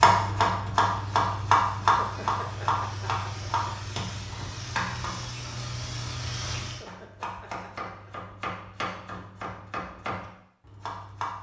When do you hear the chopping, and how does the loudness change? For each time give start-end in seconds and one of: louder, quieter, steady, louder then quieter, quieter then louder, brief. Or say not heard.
0.0-5.2 quieter
6.8-11.3 steady.